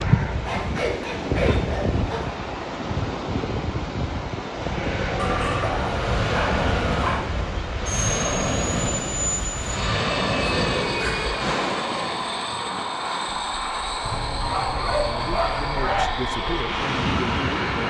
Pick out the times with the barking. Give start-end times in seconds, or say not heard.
0.5-2.4, 5.2-7.2, 10.5-11.6, 14.1-16.1.